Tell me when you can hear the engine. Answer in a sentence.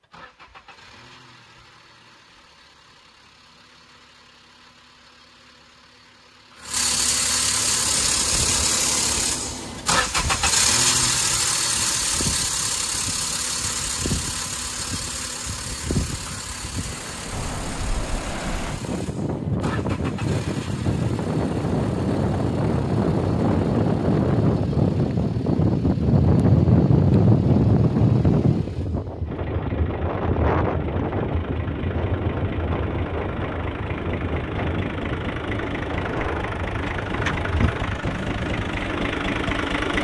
You can hear the engine from 0.0 to 40.0 s.